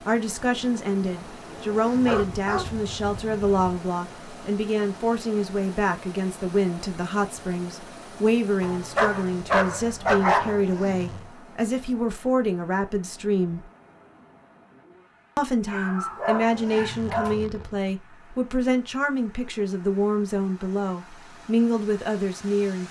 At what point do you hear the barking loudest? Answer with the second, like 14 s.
10 s.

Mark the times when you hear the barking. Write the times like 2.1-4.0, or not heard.
2.0-3.8, 8.6-10.6, 15.7-17.4.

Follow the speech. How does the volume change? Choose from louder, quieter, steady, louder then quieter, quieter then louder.
steady.